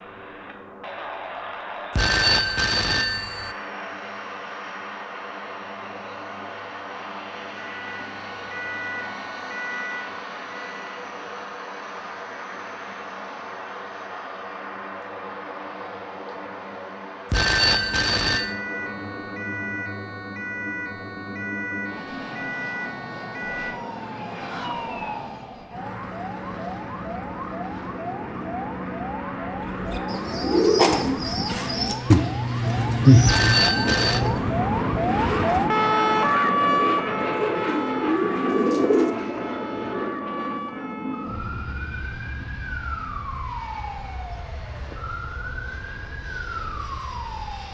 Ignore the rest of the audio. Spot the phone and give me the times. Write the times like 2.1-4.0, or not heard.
1.9-3.5, 17.3-18.6, 33.2-34.2.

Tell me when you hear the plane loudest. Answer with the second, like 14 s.
35 s.